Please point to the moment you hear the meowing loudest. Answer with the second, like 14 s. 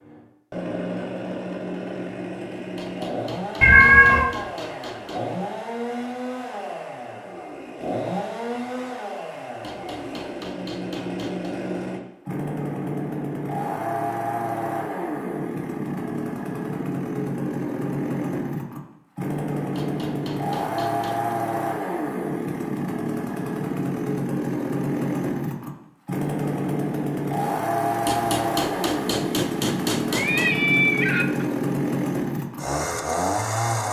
4 s.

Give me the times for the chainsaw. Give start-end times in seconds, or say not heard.
0.0-33.8.